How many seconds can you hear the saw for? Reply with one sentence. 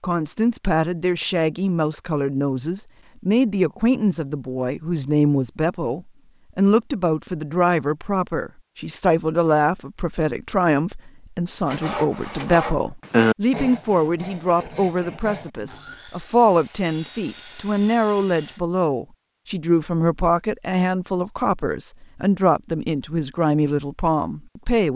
The saw can be heard for 7 seconds in total.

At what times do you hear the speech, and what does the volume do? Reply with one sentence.
You can hear the speech from 0.0 to 24.9 s, at a steady volume.